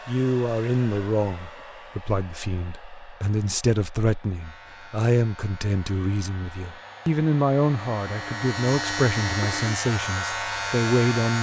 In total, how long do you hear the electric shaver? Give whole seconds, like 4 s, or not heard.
7 s.